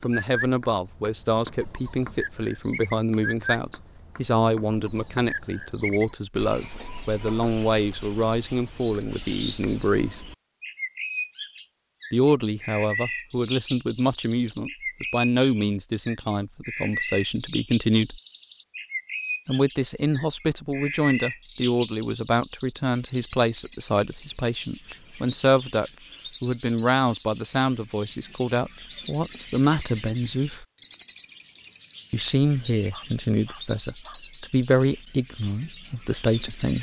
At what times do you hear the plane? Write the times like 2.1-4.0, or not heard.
not heard.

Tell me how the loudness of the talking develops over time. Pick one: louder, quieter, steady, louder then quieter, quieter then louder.
steady.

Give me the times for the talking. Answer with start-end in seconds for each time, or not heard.
0.0-10.2, 12.1-18.2, 19.4-30.6, 32.1-36.7.